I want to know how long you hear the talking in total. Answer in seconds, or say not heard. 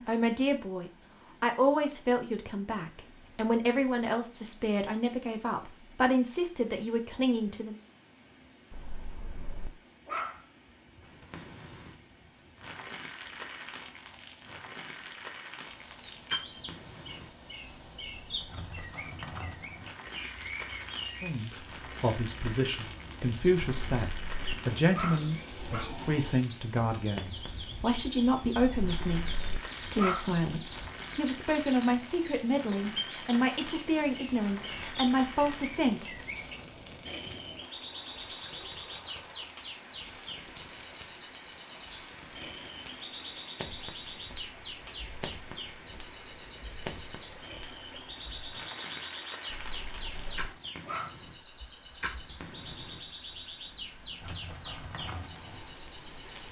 23 s.